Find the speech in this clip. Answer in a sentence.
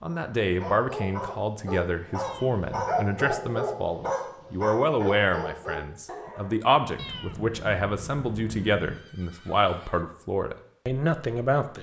The speech can be heard from 0.0 to 11.7 s.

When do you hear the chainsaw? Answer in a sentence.
You can't hear the chainsaw here.